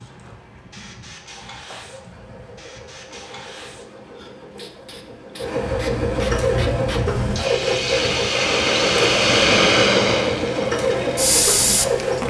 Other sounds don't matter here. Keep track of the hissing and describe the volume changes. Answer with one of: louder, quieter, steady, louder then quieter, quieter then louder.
louder.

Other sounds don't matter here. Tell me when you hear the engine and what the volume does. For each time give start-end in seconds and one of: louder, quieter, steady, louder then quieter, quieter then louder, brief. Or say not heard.
0.0-12.2 louder.